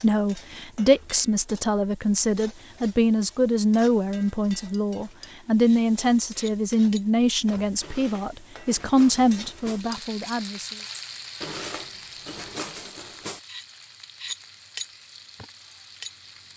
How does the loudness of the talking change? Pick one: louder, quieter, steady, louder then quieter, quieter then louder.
steady.